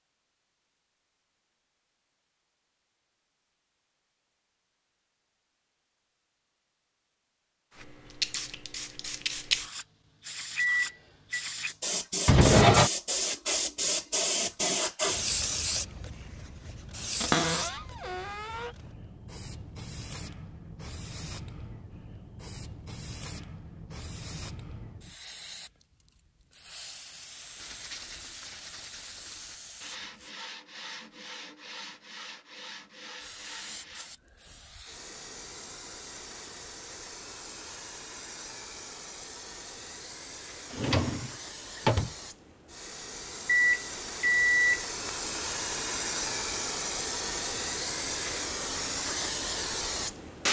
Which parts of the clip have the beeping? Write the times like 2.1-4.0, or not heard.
10.6-11.4, 43.5-44.9.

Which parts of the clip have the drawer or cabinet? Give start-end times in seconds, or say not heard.
12.2-12.9, 17.2-18.7, 40.7-42.1.